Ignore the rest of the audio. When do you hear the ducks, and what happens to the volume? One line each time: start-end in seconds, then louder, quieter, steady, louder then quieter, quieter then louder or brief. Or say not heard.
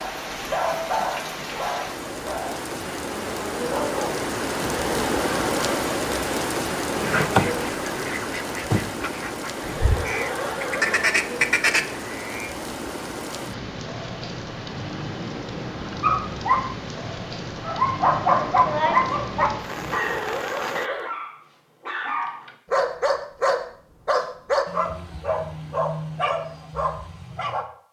6.9-12.6 quieter then louder.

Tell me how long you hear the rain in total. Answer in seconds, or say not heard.
21 s.